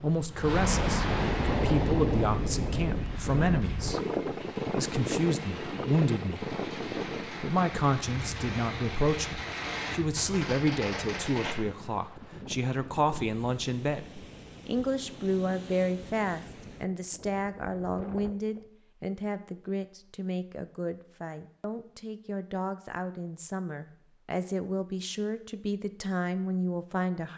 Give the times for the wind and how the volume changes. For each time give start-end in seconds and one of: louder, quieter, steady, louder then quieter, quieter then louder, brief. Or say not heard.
0.0-18.7 quieter.